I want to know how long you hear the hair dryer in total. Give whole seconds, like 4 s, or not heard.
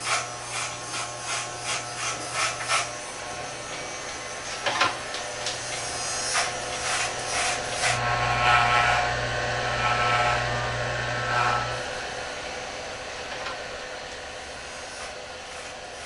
16 s.